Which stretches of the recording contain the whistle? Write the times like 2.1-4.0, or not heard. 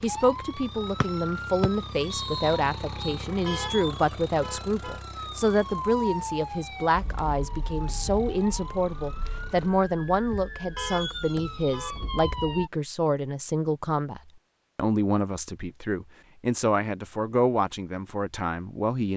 1.0-3.2.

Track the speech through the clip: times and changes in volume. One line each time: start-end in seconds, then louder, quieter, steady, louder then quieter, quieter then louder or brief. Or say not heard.
0.0-19.1 steady.